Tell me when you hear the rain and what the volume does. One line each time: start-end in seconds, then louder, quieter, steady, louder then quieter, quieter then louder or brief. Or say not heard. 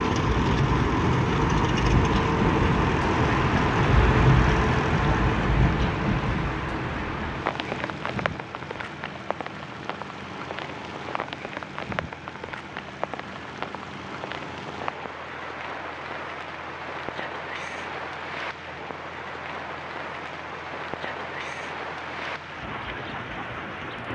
0.0-24.1 quieter.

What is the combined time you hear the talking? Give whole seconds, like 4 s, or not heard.
not heard.